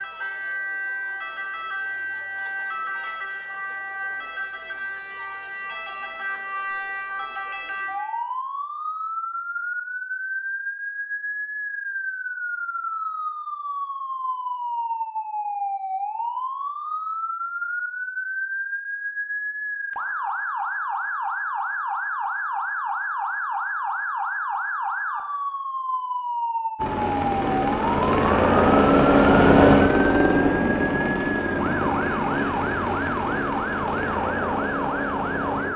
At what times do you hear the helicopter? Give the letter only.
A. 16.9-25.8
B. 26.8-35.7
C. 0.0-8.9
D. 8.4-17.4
B.